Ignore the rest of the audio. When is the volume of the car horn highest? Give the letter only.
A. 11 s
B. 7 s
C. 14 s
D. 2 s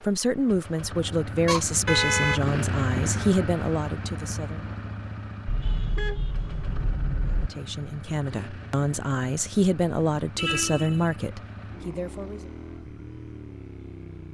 D.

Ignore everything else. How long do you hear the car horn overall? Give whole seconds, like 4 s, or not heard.
4 s.